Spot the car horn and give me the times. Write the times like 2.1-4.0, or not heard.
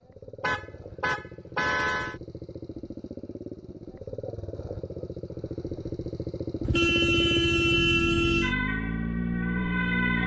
0.4-2.1, 6.6-8.6.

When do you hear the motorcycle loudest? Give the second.
10 s.